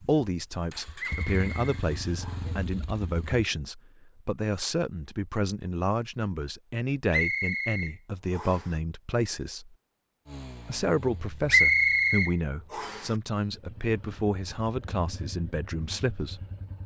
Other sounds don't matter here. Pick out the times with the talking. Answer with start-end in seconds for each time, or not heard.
0.0-9.8, 10.7-16.4.